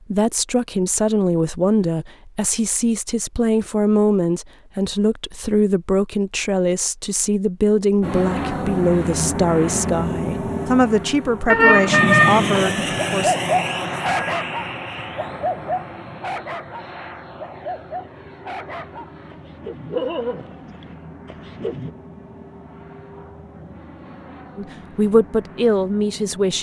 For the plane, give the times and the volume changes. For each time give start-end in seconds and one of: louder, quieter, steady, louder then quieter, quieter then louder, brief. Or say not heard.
8.0-26.5 quieter.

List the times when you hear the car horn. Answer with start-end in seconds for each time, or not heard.
11.4-12.7.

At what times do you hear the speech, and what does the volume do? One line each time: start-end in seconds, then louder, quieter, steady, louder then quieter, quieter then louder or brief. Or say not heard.
0.1-13.3 steady
24.6-26.5 brief.